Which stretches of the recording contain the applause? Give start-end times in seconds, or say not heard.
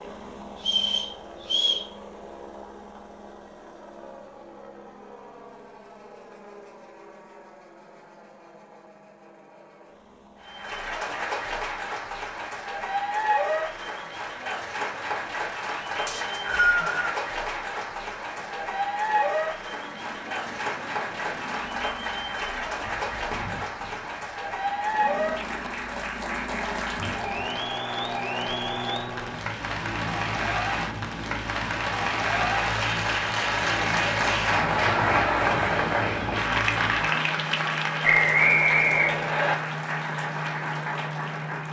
10.4-41.6.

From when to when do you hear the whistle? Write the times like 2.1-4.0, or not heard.
0.6-1.9, 16.1-17.1, 38.0-39.5.